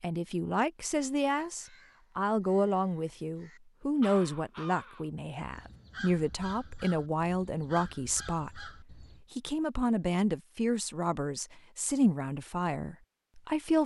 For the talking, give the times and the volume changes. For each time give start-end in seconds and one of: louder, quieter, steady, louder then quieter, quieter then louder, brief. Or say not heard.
0.0-13.8 steady.